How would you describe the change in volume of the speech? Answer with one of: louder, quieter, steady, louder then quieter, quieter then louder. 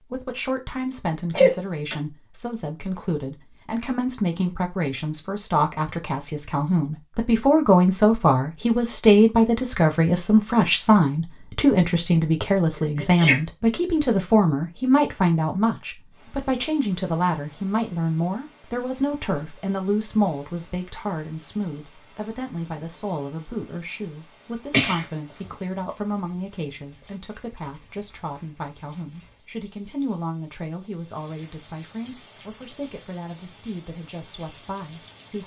louder then quieter.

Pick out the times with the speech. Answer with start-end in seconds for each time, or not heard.
0.0-35.4.